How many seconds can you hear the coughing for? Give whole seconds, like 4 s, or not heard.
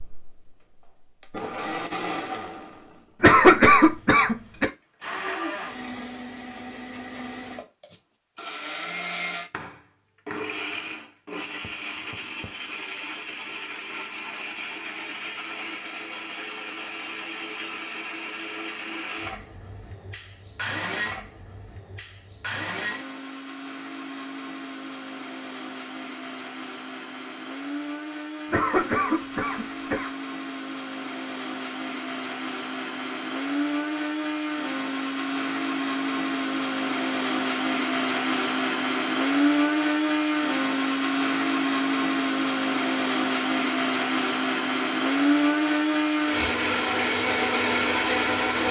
3 s.